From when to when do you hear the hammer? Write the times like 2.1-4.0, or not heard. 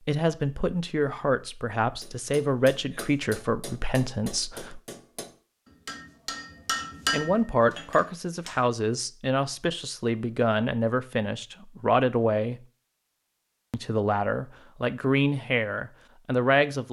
2.0-8.7.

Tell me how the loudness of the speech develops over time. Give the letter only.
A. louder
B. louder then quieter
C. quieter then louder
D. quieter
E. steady
E.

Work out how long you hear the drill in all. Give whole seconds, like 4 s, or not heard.
not heard.